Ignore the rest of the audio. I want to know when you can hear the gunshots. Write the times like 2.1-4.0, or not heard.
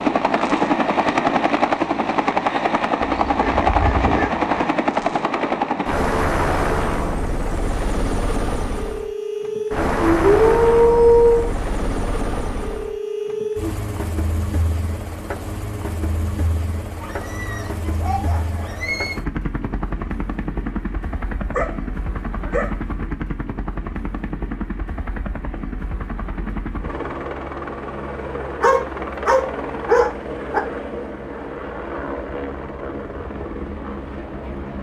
not heard.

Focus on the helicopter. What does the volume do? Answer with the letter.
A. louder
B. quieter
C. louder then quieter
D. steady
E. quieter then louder
B.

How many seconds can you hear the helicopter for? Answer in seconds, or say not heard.
35 s.